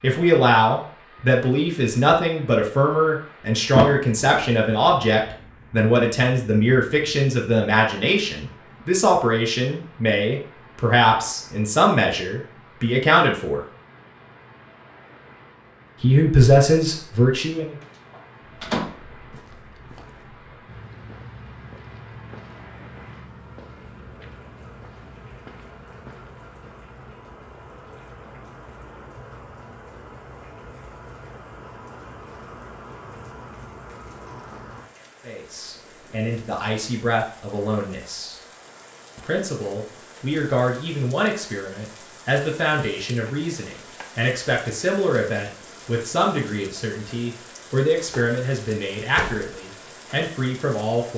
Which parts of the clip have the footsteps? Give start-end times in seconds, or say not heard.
18.4-26.8.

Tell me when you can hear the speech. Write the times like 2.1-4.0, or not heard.
0.0-13.7, 16.0-17.8, 35.2-38.4, 39.1-51.1.